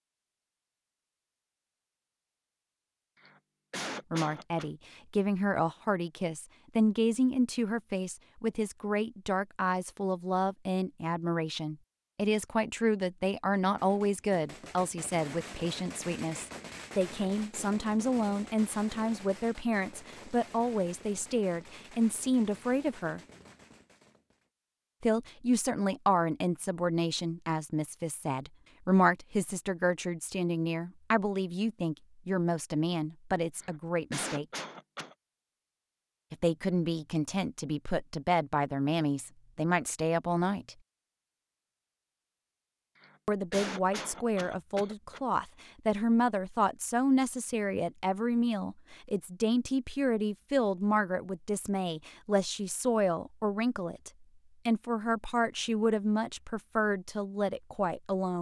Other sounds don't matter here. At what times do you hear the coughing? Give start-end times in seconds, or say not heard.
3.2-4.7, 33.5-35.1, 43.0-45.2.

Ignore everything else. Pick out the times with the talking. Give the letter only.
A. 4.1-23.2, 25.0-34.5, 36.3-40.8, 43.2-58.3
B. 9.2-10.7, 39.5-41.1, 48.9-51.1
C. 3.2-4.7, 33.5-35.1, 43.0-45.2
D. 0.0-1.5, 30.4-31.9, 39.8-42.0
A.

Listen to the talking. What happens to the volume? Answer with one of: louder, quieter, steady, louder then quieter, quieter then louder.
steady.